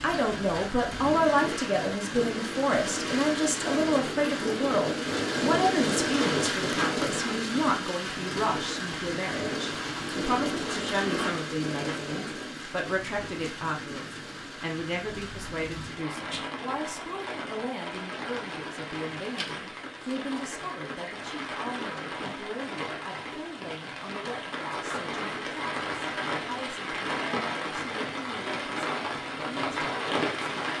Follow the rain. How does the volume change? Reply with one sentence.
The loudness of the rain goes down, then up.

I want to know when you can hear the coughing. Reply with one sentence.
The coughing can't be heard in this clip.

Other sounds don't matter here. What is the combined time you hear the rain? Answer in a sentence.
The rain can be heard for 31 seconds in total.